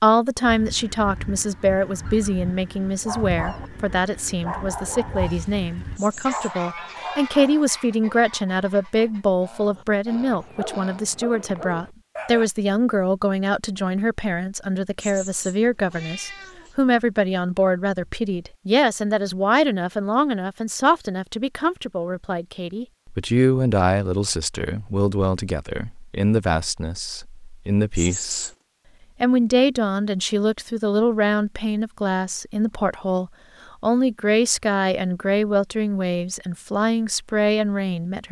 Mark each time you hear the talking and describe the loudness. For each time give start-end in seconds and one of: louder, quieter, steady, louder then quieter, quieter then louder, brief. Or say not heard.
0.0-28.5 steady
29.2-38.2 steady.